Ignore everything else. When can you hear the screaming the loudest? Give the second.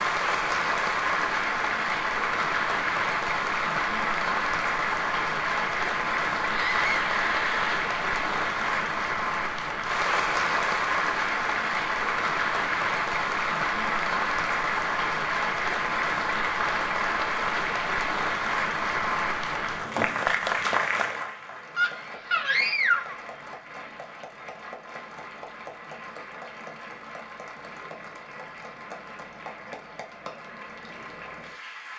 23 s.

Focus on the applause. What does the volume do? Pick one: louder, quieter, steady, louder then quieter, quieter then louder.
quieter.